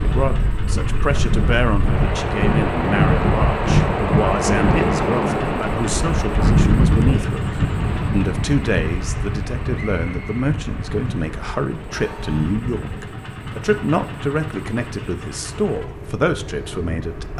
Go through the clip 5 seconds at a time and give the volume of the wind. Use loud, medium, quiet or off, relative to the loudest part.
loud, loud, quiet, quiet.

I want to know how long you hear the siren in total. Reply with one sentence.
The siren can't be heard in this clip.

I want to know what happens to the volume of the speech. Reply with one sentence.
The volume of the speech stays about the same.